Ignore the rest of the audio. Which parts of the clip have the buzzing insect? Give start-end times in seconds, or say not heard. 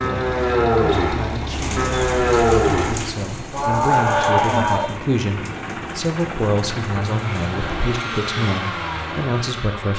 not heard.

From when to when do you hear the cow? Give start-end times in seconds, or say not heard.
0.0-5.0.